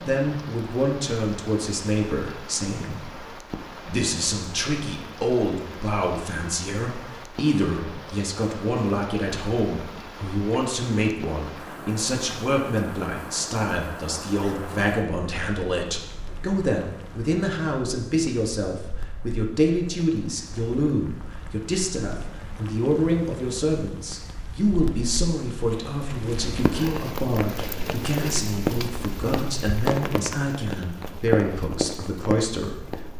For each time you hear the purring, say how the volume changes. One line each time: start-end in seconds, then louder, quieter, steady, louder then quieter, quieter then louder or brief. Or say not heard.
not heard.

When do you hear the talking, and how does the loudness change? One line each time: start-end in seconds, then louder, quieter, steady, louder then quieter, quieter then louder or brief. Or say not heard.
0.0-33.1 steady.